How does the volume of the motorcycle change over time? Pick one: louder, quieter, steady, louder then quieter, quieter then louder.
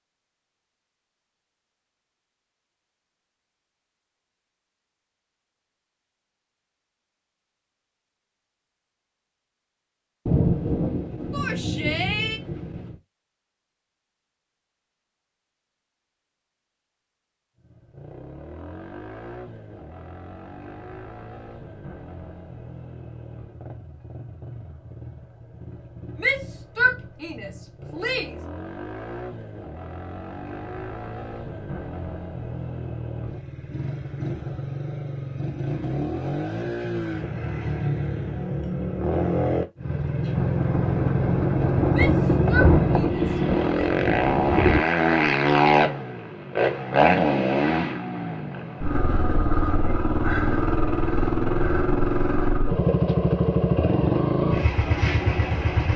louder.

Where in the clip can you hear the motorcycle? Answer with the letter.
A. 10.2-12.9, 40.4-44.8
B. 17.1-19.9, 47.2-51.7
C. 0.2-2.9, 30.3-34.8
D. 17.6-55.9
D.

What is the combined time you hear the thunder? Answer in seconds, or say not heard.
7 s.